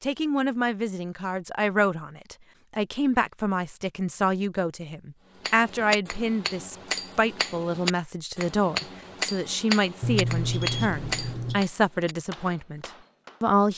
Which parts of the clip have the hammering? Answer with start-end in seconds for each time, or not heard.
5.4-13.4.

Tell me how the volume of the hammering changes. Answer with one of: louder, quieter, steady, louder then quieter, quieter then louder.
quieter.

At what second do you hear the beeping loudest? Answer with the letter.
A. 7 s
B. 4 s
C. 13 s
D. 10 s
D.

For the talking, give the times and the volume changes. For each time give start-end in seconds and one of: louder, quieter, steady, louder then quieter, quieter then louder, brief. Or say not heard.
0.0-13.7 steady.